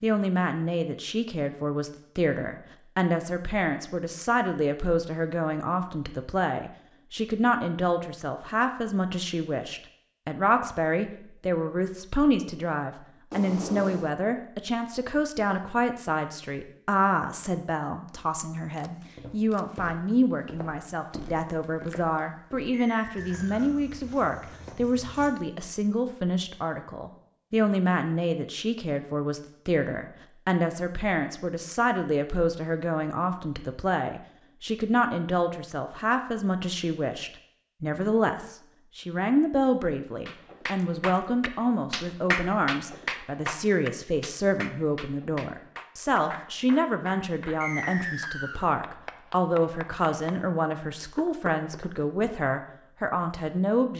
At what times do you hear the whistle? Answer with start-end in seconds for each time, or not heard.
22.7-23.7, 47.6-48.7.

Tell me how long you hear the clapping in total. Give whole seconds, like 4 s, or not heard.
12 s.